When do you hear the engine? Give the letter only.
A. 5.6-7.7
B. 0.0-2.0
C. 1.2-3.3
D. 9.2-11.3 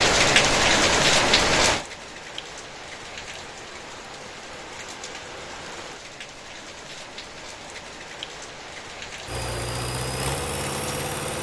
D.